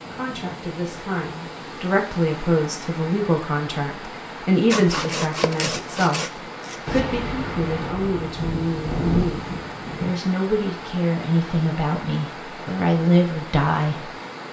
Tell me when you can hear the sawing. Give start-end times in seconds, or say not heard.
4.7-7.0.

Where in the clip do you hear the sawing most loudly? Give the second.
5 s.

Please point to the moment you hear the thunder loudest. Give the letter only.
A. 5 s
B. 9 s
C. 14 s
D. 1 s
B.